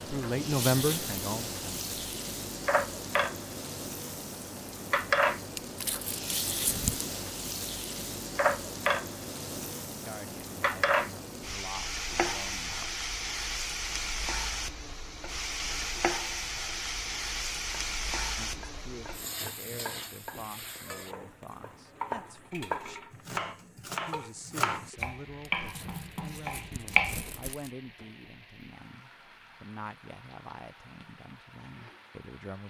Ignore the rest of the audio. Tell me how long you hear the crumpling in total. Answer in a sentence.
The crumpling can be heard for 4 seconds in total.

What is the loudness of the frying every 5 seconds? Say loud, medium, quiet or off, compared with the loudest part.
loud, loud, loud, loud, quiet, quiet, quiet.